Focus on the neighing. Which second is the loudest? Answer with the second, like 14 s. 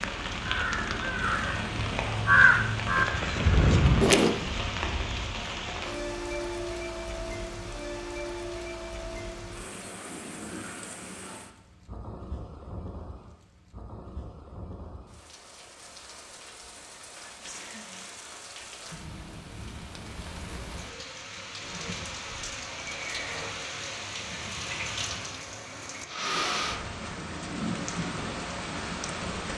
23 s.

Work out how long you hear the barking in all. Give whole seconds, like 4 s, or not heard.
not heard.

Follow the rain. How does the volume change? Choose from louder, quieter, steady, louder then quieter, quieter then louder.
quieter then louder.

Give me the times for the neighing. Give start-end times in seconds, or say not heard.
21.7-23.6.